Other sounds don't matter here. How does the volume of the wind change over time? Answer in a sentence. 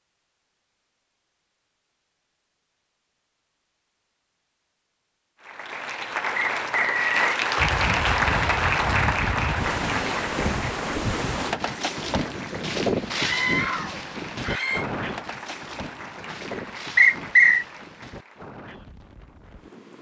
The loudness of the wind goes down.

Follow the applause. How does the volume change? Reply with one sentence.
The volume of the applause goes down.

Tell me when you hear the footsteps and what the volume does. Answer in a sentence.
The footsteps can't be heard in this clip.